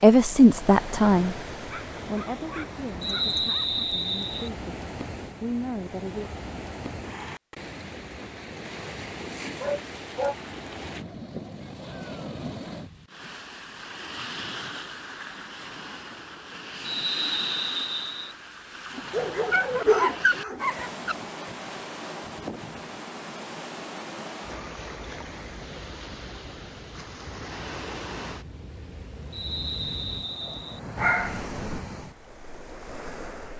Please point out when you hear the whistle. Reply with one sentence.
You can hear the whistle from 3.0 to 4.5 s, from 16.8 to 18.4 s and from 29.3 to 30.8 s.